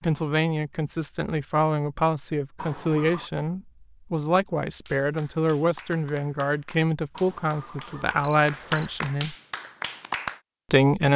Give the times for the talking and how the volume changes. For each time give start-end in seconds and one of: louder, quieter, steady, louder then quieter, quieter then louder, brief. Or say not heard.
0.0-9.3 steady
10.7-11.1 brief.